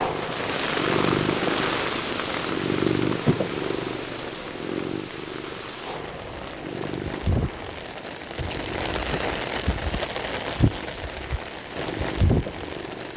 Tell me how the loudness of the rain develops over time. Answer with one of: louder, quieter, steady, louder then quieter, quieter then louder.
quieter then louder.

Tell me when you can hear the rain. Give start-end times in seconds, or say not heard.
0.1-13.1.